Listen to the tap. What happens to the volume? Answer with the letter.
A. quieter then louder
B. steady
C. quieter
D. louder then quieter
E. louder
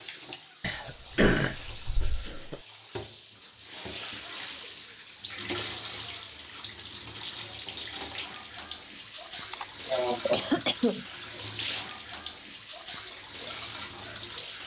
E.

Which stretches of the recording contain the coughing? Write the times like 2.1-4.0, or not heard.
0.6-2.5, 9.5-11.1.